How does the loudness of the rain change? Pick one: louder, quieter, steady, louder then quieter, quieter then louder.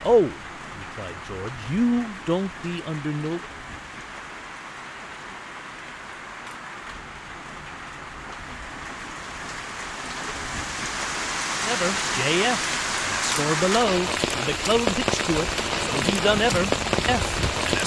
louder.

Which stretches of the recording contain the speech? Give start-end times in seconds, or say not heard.
0.0-3.4, 11.6-17.8.